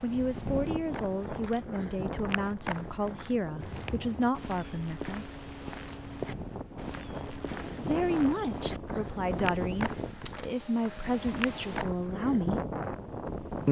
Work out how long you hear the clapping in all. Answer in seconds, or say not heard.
not heard.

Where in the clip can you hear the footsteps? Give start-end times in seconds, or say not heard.
0.9-12.2.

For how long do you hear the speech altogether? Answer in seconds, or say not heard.
10 s.